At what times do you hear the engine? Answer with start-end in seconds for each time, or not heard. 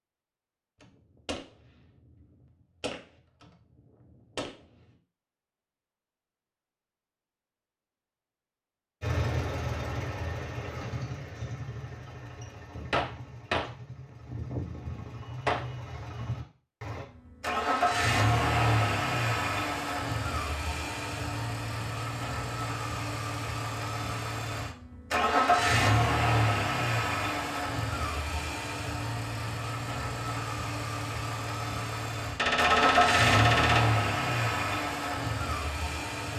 9.0-36.3.